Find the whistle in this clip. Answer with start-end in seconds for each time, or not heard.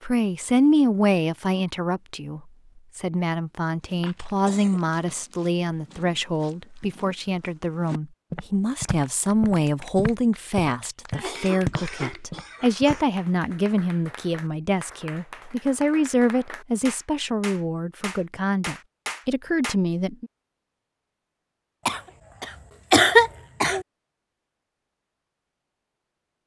not heard.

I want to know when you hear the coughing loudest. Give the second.
23 s.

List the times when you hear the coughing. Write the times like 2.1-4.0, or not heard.
3.9-5.2, 11.1-13.1, 21.9-23.9.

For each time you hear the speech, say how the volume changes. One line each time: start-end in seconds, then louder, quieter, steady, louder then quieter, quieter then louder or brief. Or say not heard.
0.0-20.3 steady.